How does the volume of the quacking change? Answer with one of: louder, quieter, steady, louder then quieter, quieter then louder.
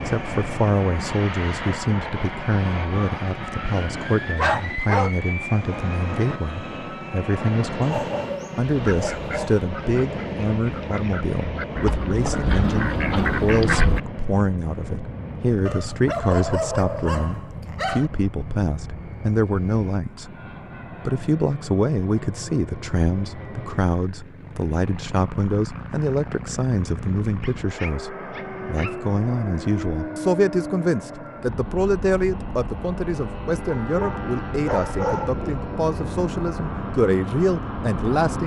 louder.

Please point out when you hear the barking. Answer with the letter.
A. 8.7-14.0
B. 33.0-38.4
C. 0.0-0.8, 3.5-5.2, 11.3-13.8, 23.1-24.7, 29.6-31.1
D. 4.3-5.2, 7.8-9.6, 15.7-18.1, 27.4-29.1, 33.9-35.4
D.